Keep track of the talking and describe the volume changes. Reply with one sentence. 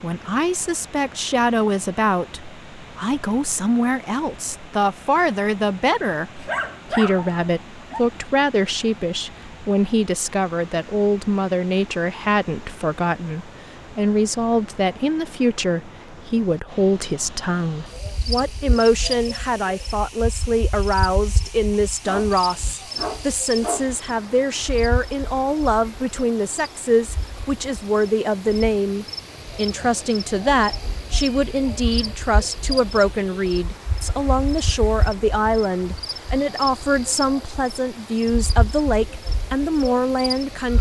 The loudness of the talking stays about the same.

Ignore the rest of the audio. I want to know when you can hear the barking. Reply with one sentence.
The barking can be heard from 6.3 to 8.1 s and from 22.0 to 24.1 s.